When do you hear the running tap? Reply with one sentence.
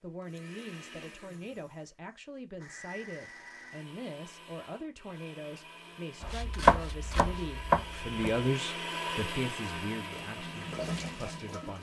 You can hear the running tap from 10.0 to 11.7 s.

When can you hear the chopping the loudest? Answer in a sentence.
The volume of the chopping peaks at 7 seconds.